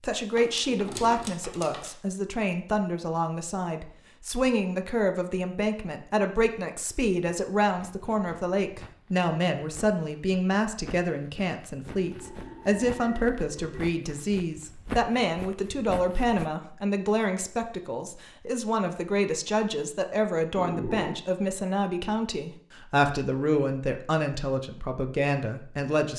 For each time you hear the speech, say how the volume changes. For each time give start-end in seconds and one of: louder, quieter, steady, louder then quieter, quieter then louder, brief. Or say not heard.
0.0-26.1 steady.